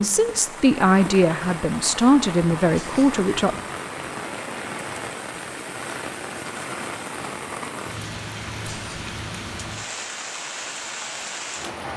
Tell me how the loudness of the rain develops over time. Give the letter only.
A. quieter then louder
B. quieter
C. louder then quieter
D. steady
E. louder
D.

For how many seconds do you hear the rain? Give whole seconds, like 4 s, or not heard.
12 s.